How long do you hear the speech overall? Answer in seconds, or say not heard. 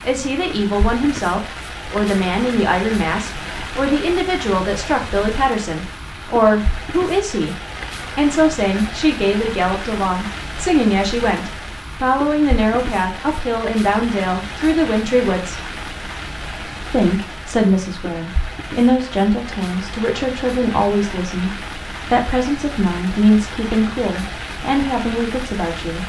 24 s.